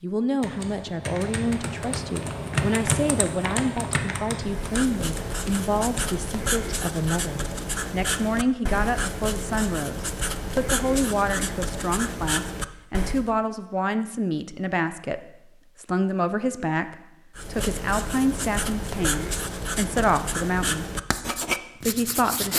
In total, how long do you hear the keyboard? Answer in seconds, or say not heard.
6 s.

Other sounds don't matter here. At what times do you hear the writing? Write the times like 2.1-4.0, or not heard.
4.4-13.3, 17.4-22.5.